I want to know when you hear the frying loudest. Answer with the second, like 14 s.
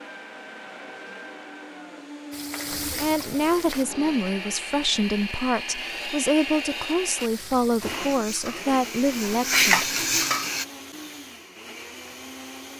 10 s.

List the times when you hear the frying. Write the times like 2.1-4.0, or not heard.
2.3-3.9, 7.2-10.7.